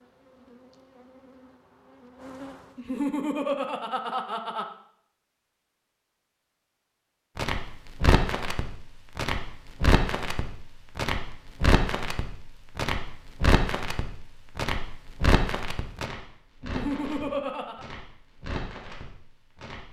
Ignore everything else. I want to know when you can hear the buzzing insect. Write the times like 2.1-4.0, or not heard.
0.0-2.9.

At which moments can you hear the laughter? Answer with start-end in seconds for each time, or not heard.
2.8-4.7, 16.6-17.9.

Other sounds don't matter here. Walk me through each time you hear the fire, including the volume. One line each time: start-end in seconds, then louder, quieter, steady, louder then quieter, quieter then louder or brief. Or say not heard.
7.3-19.8 quieter.